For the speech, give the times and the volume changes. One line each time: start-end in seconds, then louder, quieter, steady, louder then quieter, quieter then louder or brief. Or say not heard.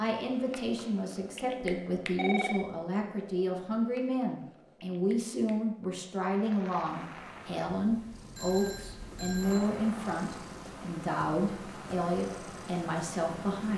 0.0-13.7 steady.